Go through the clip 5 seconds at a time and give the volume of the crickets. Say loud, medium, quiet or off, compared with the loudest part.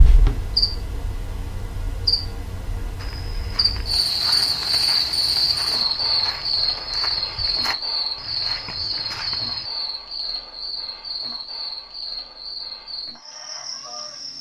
loud, loud, medium.